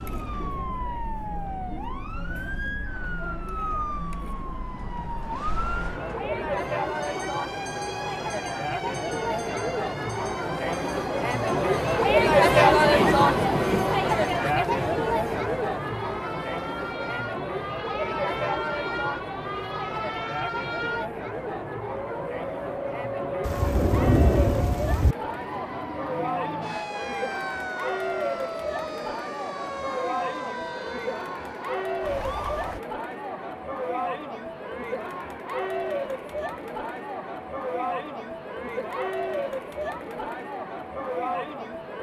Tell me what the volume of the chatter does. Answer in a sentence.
The volume of the chatter goes up, then down.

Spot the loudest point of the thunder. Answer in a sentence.
The loudest moment of the thunder is at 24 seconds.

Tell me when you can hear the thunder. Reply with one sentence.
The thunder can be heard from 12.8 to 13.9 s and from 23.4 to 25.1 s.